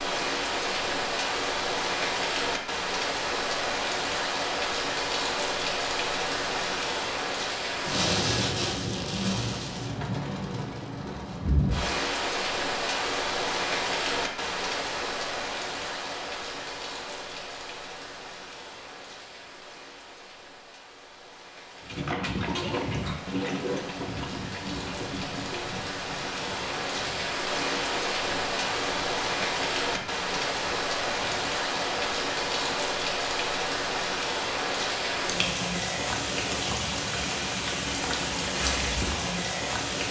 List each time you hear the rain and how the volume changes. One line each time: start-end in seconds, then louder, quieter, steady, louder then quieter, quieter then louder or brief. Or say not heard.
0.0-40.0 quieter then louder.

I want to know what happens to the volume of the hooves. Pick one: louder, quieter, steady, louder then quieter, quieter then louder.
quieter.